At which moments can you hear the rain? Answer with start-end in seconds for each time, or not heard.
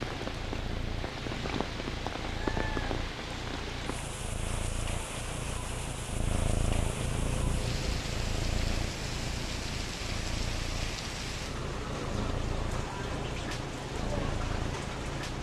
0.0-15.3.